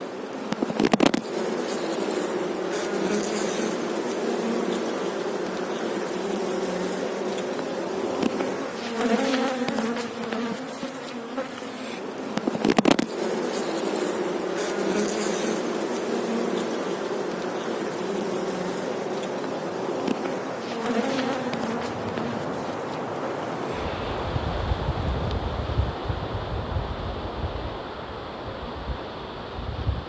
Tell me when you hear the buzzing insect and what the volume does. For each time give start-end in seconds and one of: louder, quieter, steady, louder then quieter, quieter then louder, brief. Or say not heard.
0.0-30.0 quieter.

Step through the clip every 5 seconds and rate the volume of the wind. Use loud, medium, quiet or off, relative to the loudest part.
medium, medium, medium, medium, loud, loud.